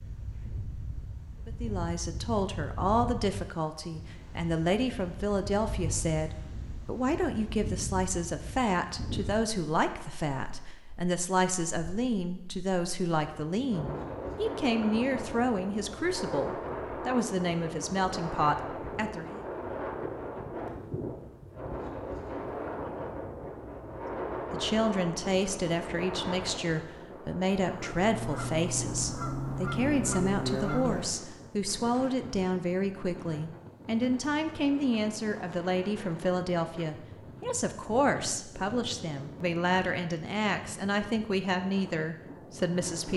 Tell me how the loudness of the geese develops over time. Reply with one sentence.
The volume of the geese goes up.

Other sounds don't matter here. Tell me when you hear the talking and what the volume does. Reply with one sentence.
The talking can be heard from 1.4 to 19.4 s, at a steady volume; and from 24.5 to 43.1 s, at a steady volume.